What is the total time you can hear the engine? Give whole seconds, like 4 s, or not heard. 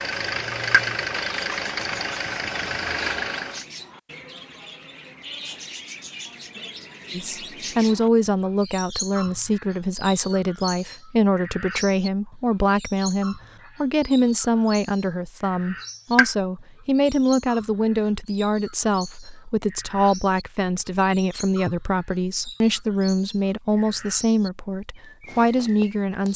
4 s.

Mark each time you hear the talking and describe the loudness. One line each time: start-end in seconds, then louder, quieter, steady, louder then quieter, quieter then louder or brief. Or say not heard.
7.1-26.3 steady.